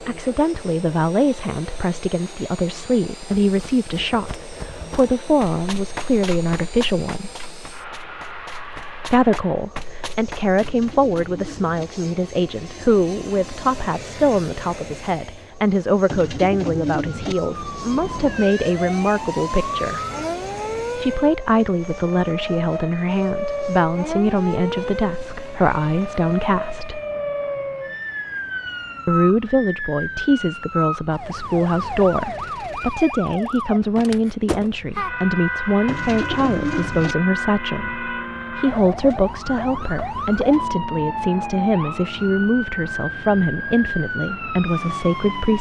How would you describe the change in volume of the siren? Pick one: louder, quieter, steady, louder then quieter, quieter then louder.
steady.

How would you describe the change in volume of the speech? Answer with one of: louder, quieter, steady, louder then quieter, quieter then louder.
steady.